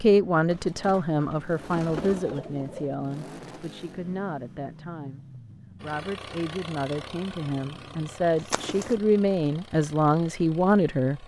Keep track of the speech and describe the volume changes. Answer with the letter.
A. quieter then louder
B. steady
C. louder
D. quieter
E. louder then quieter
A.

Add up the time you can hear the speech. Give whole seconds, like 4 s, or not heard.
11 s.